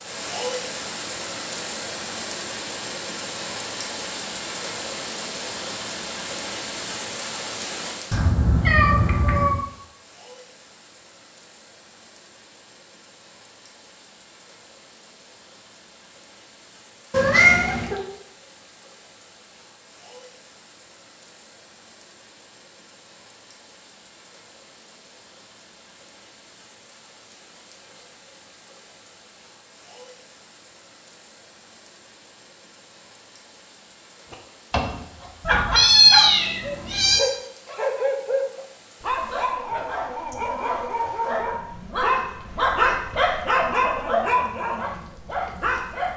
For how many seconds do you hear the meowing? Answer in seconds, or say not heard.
4 s.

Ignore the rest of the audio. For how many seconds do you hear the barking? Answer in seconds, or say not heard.
12 s.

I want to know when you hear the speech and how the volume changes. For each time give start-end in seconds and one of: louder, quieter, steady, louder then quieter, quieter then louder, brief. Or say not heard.
not heard.